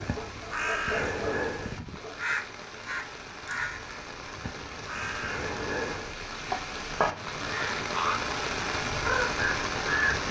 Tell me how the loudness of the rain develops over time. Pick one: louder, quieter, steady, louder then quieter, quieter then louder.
louder.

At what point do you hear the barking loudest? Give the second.
1 s.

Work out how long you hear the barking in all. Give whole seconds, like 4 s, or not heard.
2 s.